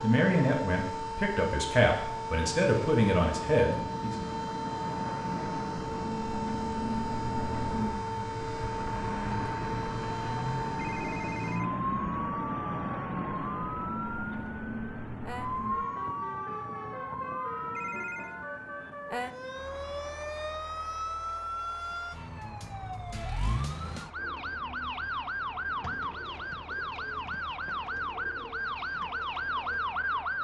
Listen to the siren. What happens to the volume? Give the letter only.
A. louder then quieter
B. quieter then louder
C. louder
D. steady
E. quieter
D.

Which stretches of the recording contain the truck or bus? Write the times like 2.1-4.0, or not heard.
0.0-30.3.